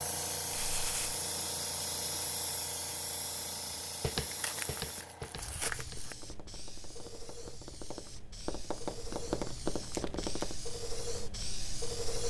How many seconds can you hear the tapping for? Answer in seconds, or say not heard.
7 s.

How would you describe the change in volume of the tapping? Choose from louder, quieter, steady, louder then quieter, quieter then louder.
quieter then louder.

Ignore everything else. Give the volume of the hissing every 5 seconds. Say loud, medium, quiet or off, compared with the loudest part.
loud, medium, loud.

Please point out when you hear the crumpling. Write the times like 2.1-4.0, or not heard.
0.5-1.1, 4.2-6.2, 9.9-10.4.